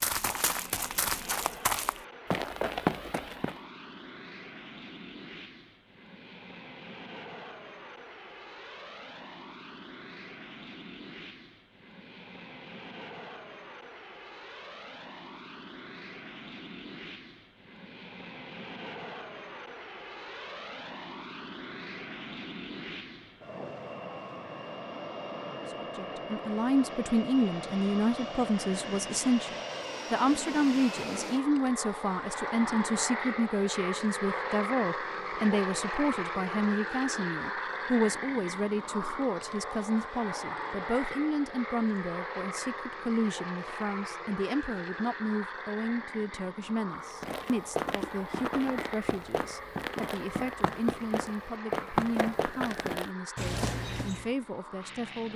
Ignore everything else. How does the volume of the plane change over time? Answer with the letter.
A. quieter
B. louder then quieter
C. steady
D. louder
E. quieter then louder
B.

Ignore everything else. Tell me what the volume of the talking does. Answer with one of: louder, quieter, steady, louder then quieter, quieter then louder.
quieter.